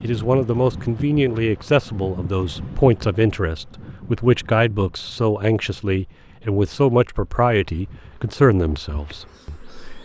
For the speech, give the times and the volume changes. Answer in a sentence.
You can hear the speech from 0.0 to 10.0 s, at a steady volume.